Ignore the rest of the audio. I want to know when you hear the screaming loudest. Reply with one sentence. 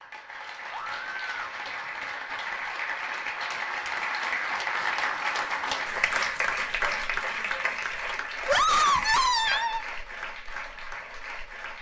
The volume of the screaming peaks at 9 seconds.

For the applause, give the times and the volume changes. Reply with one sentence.
You can hear the applause from 0.0 to 11.7 s, getting louder then quieter.